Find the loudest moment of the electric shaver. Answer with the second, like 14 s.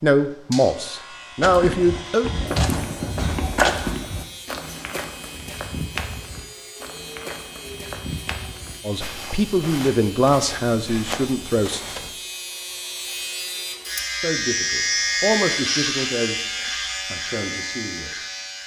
15 s.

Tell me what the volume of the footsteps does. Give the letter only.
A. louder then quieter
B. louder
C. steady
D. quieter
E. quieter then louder
D.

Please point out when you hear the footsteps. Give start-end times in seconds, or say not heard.
1.4-12.1.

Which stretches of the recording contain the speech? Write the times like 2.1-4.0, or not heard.
0.0-2.3, 8.8-11.8, 14.1-18.1.